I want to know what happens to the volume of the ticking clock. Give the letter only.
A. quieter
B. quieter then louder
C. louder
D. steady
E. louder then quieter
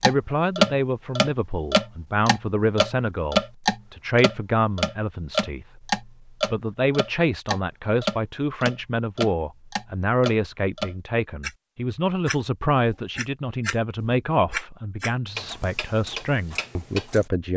A.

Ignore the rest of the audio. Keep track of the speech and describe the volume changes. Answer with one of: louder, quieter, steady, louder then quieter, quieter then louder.
steady.